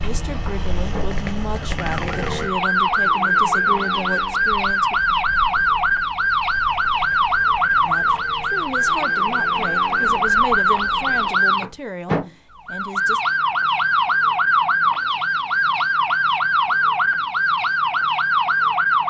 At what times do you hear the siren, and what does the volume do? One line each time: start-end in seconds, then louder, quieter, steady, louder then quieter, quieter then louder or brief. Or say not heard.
0.0-19.0 steady.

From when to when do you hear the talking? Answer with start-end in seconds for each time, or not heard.
0.0-5.0, 7.8-13.2.